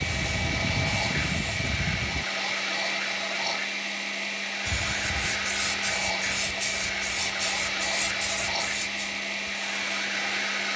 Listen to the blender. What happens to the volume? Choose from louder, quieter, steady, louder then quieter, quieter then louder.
steady.